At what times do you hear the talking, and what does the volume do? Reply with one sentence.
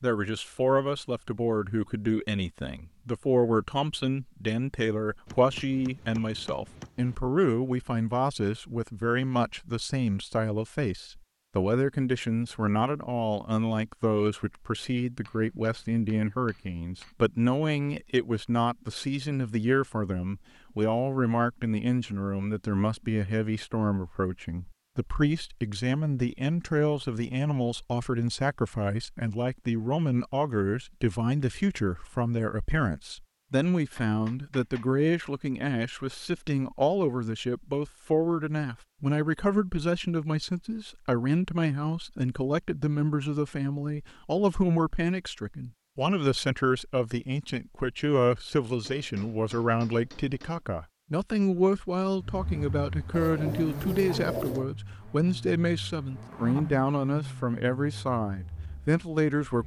The talking can be heard from 0.0 to 59.6 s, at a steady volume.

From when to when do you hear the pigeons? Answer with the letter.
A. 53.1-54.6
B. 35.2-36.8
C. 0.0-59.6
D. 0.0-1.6
A.